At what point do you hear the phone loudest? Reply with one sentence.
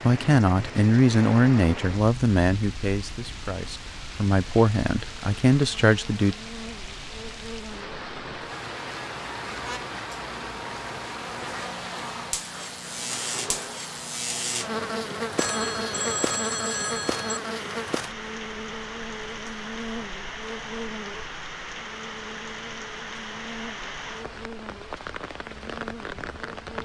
The volume of the phone peaks at 16 seconds.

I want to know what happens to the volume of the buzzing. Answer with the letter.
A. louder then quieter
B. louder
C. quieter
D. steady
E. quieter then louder
A.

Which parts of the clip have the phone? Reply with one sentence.
You can hear the phone from 15.3 to 17.4 s.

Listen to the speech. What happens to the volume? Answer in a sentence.
The volume of the speech goes down, then up.